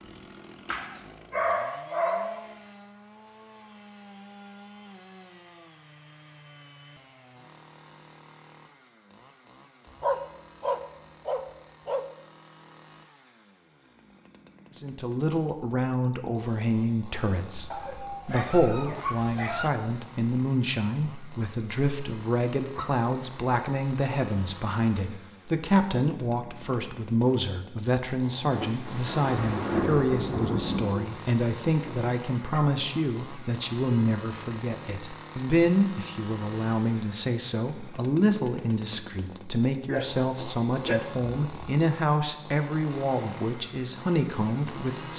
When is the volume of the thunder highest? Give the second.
30 s.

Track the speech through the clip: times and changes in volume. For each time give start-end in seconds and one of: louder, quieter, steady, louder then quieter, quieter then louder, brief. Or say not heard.
14.8-45.1 steady.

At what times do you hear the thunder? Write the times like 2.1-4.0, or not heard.
28.5-31.1.